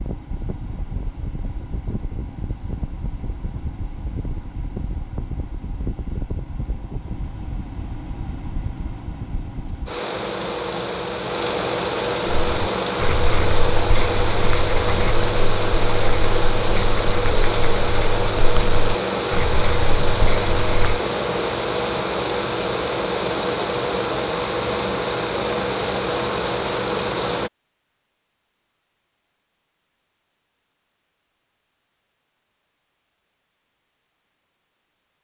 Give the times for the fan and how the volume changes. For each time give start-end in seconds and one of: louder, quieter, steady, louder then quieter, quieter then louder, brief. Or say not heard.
0.0-27.5 louder.